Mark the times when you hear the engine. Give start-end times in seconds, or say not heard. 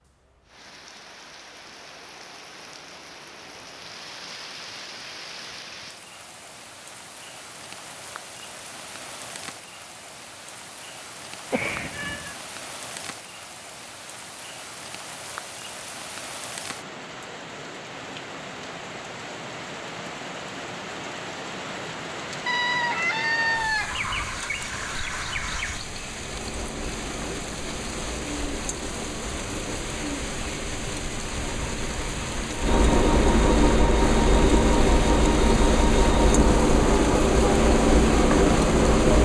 26.1-39.1.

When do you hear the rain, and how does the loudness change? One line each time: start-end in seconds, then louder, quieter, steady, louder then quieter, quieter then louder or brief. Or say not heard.
0.0-39.1 louder.